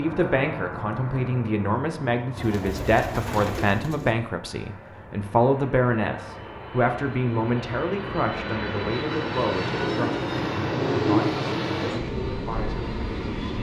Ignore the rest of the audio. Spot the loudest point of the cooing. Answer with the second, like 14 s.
11 s.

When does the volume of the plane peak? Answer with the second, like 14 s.
11 s.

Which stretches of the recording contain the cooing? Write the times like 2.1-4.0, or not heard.
2.4-4.2, 9.6-11.4.